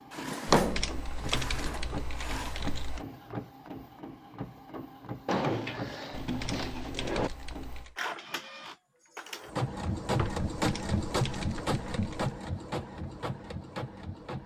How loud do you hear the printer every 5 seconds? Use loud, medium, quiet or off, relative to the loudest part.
medium, medium, loud.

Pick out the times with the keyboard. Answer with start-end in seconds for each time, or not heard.
0.5-3.0, 6.2-8.0, 10.6-12.3.